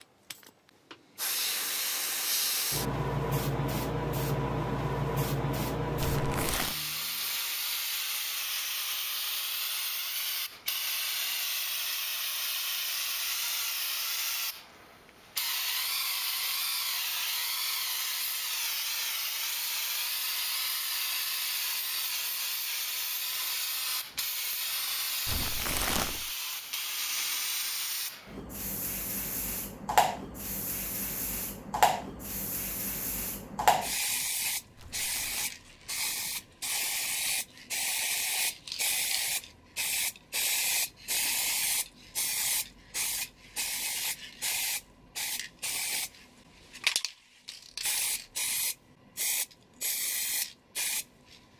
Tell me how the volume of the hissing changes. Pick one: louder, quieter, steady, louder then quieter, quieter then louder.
steady.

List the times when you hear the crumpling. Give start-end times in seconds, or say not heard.
6.0-6.8, 25.2-26.3, 34.8-35.5.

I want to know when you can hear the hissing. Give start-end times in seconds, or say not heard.
0.0-51.4.